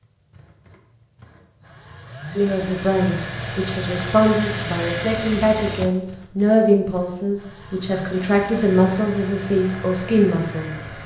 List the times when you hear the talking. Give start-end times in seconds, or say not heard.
2.4-10.8.